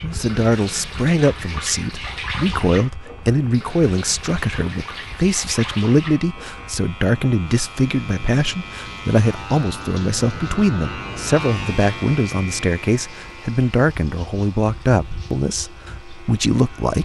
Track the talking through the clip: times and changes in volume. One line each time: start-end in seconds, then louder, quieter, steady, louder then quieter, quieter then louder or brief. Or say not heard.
0.0-16.9 steady.